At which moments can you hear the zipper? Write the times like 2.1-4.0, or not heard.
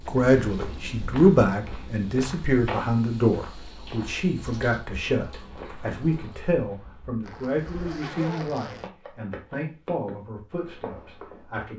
7.2-8.9.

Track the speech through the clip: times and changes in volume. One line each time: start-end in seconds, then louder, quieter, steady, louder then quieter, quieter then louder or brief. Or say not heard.
0.1-11.7 quieter.